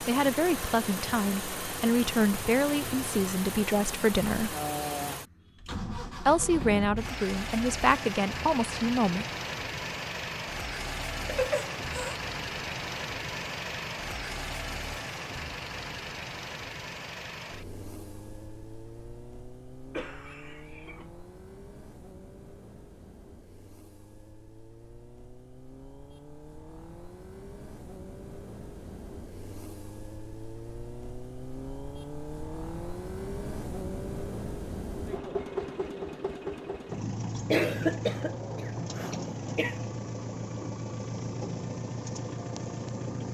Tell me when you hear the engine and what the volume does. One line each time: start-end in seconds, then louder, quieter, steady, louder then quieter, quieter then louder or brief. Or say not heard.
0.0-43.2 quieter then louder.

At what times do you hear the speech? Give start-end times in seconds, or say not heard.
0.0-4.5, 6.2-9.2.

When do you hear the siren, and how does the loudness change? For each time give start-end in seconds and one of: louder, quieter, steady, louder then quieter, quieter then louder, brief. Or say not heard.
not heard.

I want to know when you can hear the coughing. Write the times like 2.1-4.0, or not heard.
11.2-12.2, 19.9-21.1, 37.4-39.8.